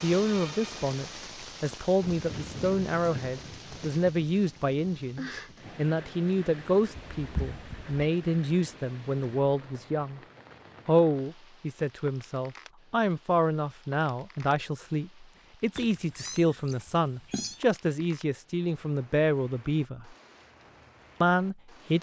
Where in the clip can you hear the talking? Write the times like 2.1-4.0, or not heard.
0.0-10.2, 10.8-20.1, 21.2-21.9.